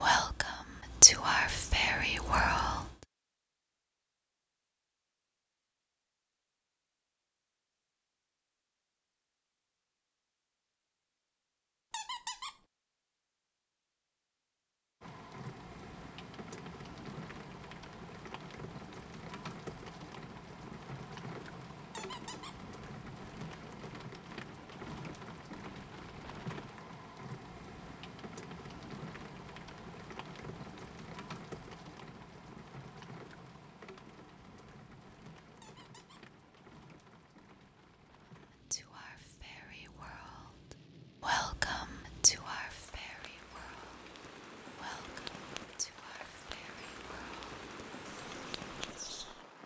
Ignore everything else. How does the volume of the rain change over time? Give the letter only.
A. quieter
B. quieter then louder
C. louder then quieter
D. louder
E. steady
B.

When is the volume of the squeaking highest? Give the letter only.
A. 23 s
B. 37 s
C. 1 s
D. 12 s
D.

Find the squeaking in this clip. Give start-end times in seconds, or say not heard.
11.9-12.6, 21.9-22.6, 35.6-36.2.